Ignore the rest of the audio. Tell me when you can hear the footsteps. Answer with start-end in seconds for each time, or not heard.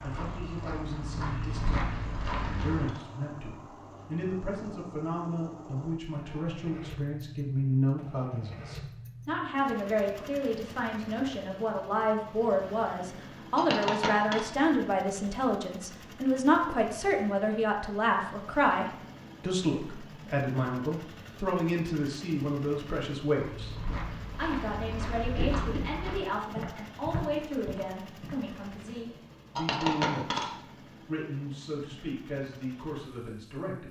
0.0-2.9, 23.4-28.4.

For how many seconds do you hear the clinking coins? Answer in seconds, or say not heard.
3 s.